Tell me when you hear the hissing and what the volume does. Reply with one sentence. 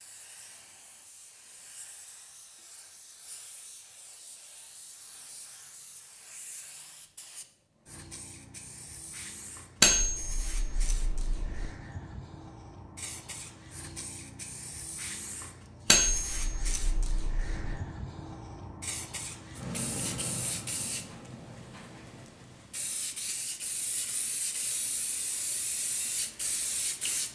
You can hear the hissing from 0.0 to 27.2 s, getting louder.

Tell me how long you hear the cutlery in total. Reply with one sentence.
The cutlery can be heard for 4 seconds in total.